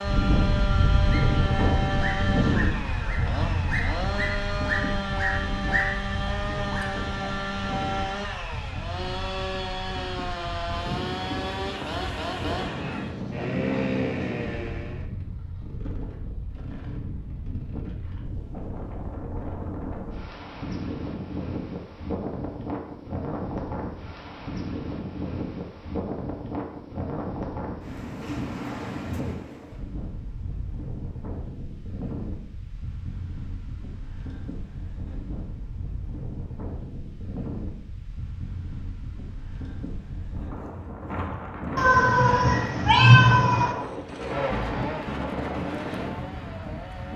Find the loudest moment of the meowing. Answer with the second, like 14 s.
43 s.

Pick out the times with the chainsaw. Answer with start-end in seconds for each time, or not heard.
0.0-15.1, 43.7-47.1.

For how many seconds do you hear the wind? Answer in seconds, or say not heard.
47 s.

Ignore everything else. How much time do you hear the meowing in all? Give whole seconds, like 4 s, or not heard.
2 s.